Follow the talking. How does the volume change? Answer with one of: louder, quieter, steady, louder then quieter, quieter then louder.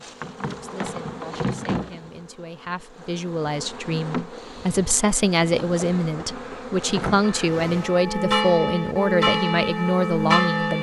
louder.